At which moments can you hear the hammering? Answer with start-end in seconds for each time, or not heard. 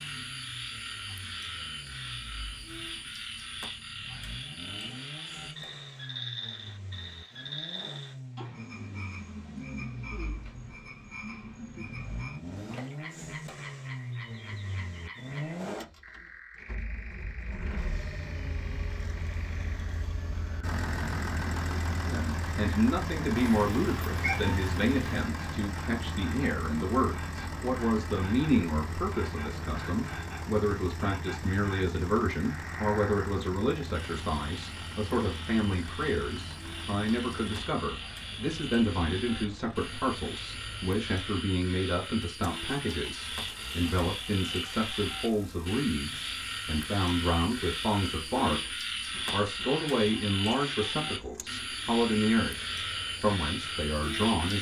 not heard.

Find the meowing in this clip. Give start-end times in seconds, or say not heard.
23.4-25.2.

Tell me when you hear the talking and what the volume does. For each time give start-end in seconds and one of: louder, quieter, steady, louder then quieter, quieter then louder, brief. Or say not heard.
22.0-52.6 steady
53.2-54.5 brief.